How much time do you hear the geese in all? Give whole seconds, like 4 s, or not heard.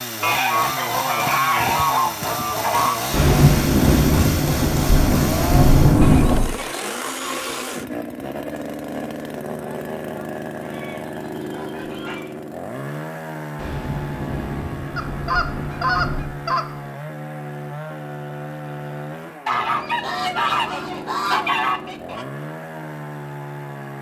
11 s.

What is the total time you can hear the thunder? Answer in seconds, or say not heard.
6 s.